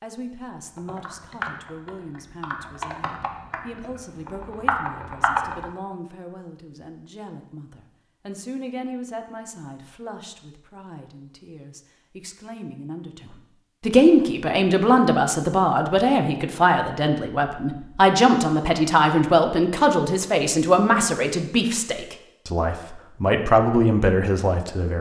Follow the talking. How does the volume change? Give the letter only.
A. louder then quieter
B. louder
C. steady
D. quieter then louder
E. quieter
B.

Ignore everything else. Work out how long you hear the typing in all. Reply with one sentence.
You can hear the typing for 5 seconds altogether.